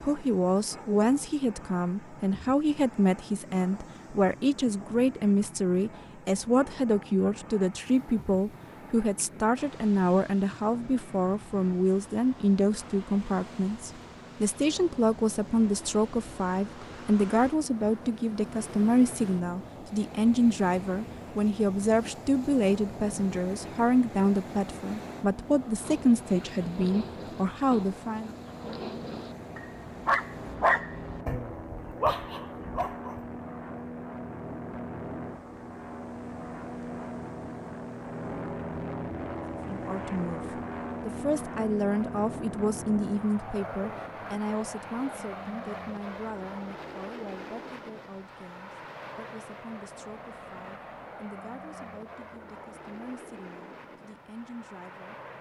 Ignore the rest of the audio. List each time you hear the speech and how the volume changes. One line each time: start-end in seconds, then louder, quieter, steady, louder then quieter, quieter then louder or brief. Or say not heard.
0.0-28.3 steady
39.7-55.1 quieter.